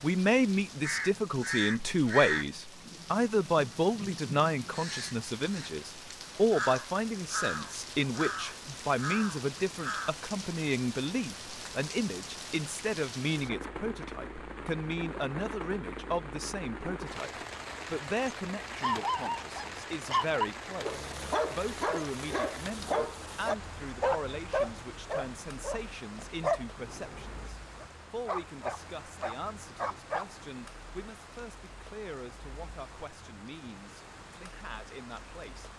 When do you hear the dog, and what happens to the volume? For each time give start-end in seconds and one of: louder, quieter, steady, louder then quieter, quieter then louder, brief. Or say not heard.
18.8-30.3 steady.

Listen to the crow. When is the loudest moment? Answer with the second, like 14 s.
2 s.